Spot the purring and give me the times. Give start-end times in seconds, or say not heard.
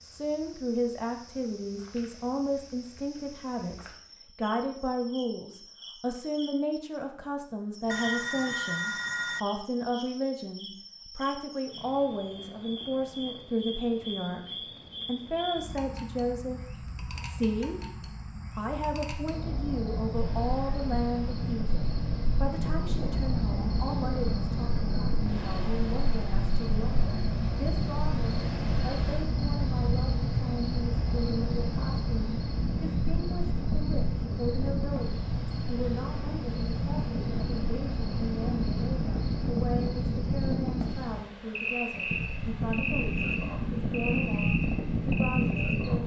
not heard.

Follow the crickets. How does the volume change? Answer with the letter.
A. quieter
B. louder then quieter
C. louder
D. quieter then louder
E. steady
C.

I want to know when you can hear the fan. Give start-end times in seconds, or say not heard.
20.1-46.0.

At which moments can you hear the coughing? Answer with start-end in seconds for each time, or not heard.
not heard.